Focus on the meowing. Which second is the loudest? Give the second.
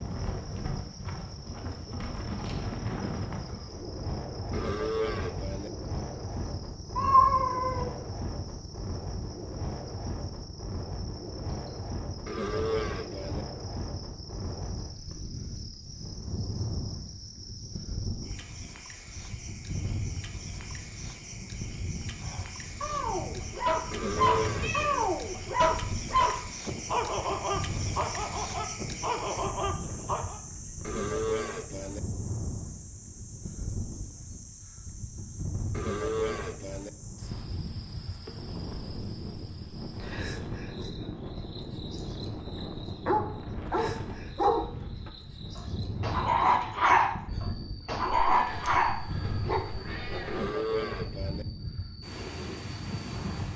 7 s.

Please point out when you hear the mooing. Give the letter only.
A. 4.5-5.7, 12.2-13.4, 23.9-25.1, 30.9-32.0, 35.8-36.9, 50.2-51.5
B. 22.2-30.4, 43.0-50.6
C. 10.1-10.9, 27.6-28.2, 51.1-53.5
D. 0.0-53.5
A.